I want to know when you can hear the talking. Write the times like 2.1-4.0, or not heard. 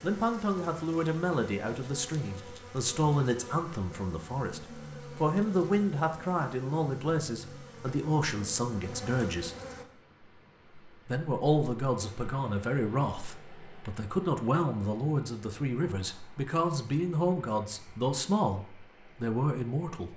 0.0-9.6, 11.1-20.1.